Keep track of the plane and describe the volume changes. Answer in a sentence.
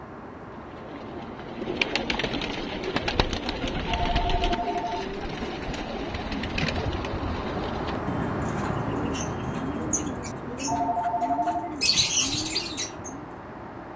The loudness of the plane goes up, then down.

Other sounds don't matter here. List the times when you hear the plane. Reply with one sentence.
You can hear the plane from 0.0 to 13.9 s.